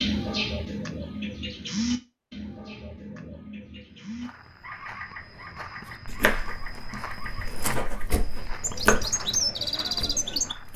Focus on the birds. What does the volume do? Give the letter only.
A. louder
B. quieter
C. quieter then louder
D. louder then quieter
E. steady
C.